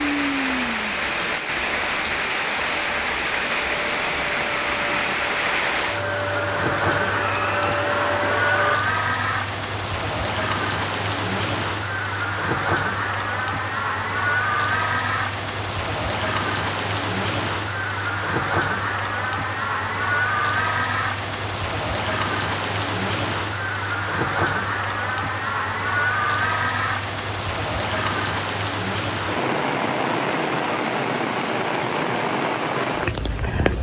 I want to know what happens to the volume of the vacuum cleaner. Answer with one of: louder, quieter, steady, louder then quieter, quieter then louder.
louder.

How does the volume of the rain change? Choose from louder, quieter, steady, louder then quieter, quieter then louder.
steady.